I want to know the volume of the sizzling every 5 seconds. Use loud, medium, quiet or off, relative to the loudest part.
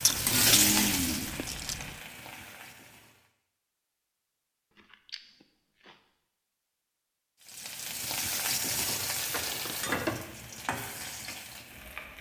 loud, loud, medium.